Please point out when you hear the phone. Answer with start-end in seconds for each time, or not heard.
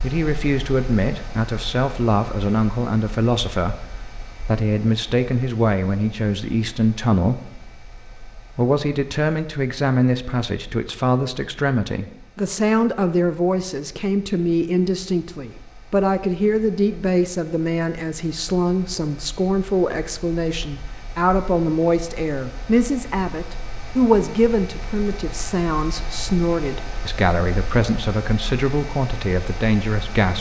not heard.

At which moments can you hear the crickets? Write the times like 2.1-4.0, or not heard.
not heard.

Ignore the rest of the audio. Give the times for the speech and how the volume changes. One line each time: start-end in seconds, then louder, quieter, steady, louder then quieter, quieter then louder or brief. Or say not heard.
0.0-30.3 steady.